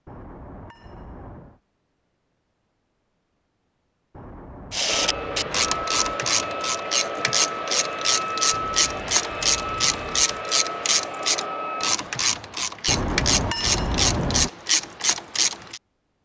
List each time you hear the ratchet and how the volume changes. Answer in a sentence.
The ratchet can be heard from 4.7 to 15.8 s, at a steady volume.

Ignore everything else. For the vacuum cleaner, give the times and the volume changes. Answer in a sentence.
You can hear the vacuum cleaner from 4.8 to 11.9 s, at a steady volume.